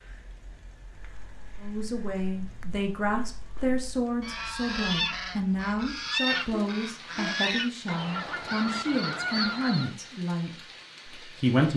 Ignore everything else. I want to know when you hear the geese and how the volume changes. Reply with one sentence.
You can hear the geese from 1.0 to 9.9 s, getting louder.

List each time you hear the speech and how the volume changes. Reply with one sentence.
The speech can be heard from 1.6 to 11.7 s, at a steady volume.